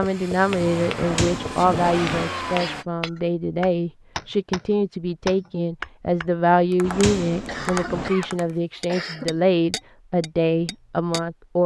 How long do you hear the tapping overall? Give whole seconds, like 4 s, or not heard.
11 s.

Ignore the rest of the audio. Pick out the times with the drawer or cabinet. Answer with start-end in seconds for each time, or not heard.
0.9-2.2, 6.8-8.1.